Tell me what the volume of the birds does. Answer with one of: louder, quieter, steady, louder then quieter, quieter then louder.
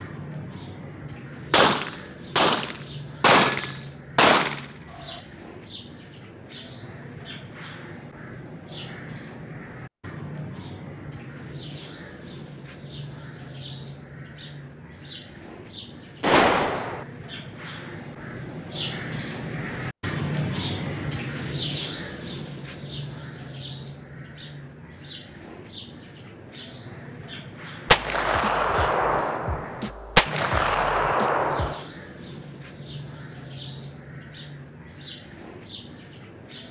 louder then quieter.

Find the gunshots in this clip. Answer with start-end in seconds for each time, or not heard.
1.5-5.2, 16.2-17.1, 27.9-31.9.